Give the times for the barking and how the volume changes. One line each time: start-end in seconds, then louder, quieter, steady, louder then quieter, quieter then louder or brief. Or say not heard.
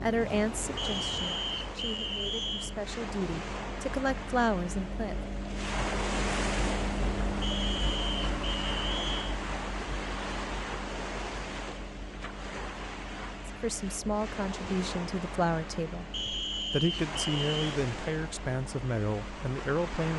not heard.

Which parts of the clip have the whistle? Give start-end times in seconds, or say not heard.
0.8-2.8, 7.4-9.3, 16.1-17.7.